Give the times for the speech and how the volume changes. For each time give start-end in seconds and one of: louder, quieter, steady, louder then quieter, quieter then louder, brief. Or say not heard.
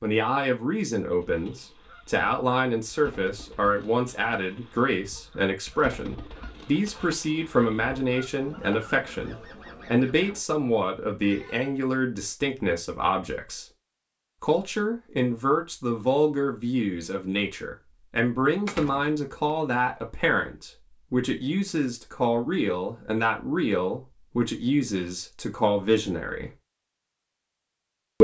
0.0-13.7 steady
14.4-26.5 steady.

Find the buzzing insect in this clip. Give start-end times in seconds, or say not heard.
not heard.